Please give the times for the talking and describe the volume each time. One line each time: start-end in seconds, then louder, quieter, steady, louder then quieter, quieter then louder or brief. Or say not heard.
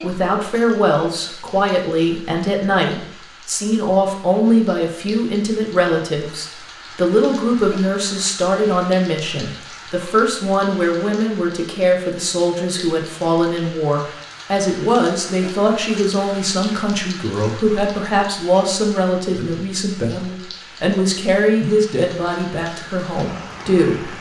0.0-24.1 steady.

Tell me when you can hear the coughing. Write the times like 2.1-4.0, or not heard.
not heard.